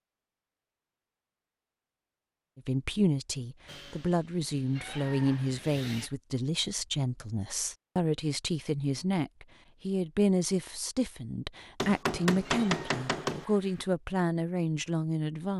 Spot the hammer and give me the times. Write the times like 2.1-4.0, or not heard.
11.8-13.4.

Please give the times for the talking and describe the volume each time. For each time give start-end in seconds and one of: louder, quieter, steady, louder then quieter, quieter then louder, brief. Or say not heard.
2.5-15.5 steady.